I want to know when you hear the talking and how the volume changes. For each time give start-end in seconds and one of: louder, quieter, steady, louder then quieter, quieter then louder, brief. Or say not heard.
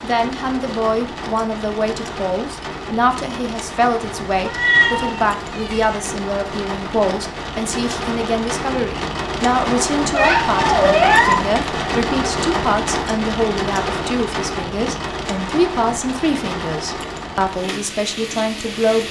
0.0-19.0 steady.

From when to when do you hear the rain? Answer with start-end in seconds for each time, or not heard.
0.0-19.0.